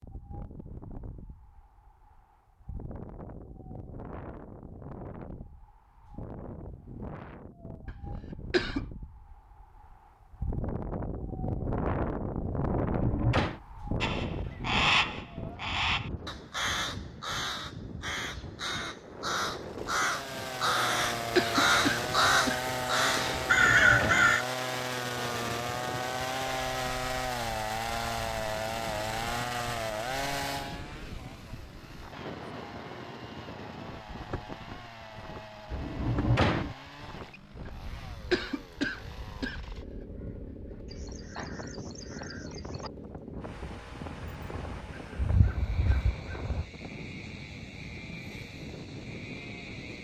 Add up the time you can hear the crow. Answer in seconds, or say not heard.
17 s.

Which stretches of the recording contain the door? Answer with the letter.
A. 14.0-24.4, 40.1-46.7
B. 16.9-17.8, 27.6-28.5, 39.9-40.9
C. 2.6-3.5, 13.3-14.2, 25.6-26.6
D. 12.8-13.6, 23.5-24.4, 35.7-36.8
D.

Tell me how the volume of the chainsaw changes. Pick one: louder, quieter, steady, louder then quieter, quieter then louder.
quieter.